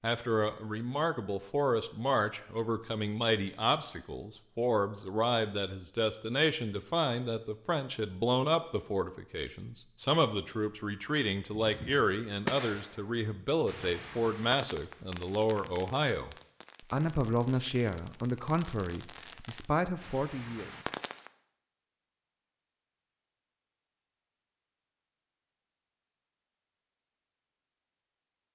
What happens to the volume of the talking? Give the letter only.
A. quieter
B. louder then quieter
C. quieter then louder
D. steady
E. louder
D.